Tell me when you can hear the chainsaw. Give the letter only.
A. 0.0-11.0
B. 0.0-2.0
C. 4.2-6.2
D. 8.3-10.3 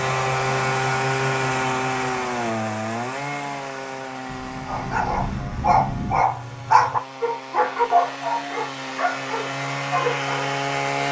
A.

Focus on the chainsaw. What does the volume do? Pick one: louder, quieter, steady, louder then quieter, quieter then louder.
quieter then louder.